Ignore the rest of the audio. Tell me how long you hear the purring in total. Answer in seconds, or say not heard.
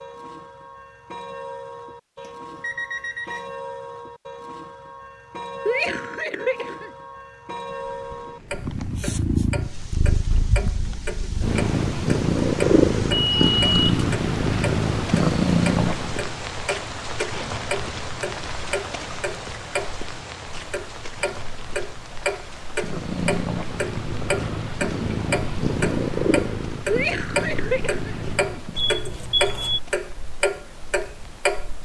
14 s.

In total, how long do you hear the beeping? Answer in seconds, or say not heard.
3 s.